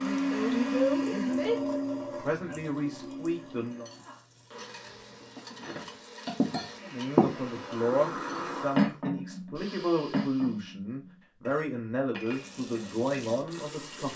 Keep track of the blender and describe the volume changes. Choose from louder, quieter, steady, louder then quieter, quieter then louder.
quieter then louder.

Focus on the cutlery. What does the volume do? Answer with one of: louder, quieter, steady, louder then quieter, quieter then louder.
louder then quieter.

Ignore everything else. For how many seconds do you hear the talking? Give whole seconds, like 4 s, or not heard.
11 s.